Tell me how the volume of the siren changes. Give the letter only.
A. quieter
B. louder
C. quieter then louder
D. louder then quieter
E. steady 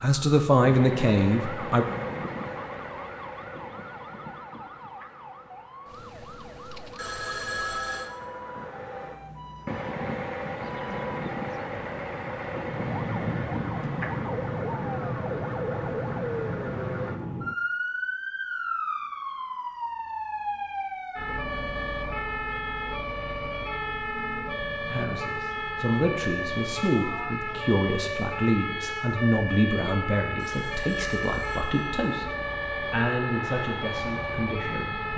B.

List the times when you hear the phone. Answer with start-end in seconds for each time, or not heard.
7.0-8.1, 30.4-31.9.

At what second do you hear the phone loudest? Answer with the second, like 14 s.
8 s.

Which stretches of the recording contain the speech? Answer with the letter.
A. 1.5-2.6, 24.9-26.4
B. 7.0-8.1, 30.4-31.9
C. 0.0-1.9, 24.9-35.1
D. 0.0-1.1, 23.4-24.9
C.